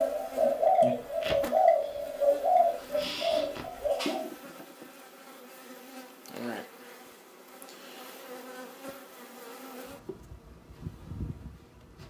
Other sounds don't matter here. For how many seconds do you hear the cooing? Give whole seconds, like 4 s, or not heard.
4 s.